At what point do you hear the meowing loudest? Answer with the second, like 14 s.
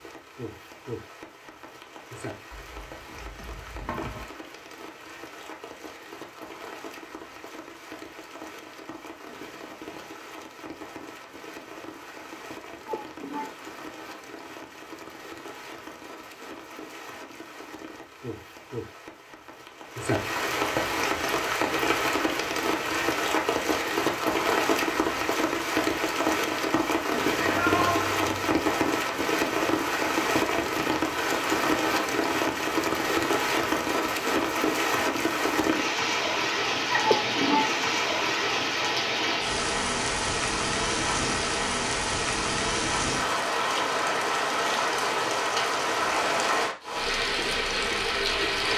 28 s.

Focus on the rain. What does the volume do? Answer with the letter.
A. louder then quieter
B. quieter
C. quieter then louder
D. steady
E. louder
E.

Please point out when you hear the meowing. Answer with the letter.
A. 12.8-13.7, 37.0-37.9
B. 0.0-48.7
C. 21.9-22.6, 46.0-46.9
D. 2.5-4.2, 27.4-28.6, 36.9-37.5
D.